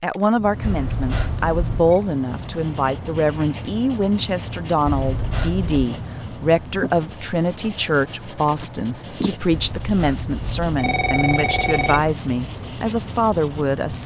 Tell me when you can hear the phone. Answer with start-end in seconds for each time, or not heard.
0.6-2.0, 4.8-5.8, 9.5-12.2.